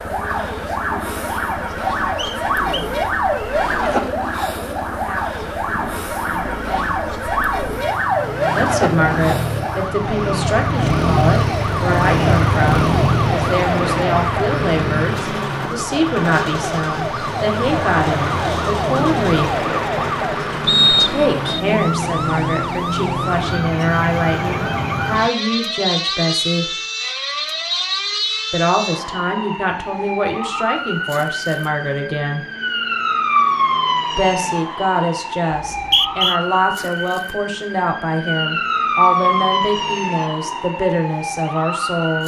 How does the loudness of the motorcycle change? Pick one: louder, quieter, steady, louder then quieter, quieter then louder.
louder then quieter.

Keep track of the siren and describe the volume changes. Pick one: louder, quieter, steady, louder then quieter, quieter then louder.
steady.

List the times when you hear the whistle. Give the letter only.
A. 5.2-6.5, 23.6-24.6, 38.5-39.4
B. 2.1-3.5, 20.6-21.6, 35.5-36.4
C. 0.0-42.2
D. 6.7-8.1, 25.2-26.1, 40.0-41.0
B.